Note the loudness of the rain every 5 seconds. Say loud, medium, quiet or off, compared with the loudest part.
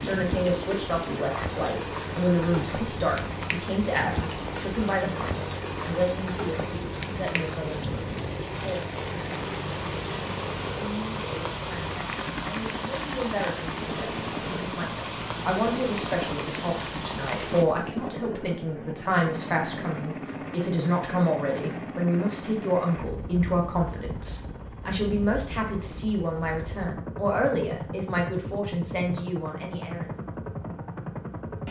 loud, loud, loud, loud, off, off, off.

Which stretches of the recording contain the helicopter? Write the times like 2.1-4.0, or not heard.
0.0-31.6.